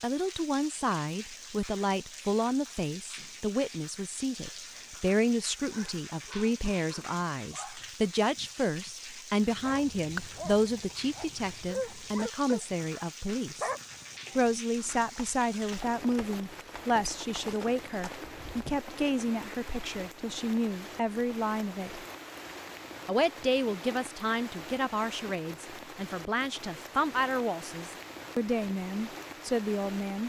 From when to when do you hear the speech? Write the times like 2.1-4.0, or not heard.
0.0-13.7, 14.3-22.0, 23.1-30.2.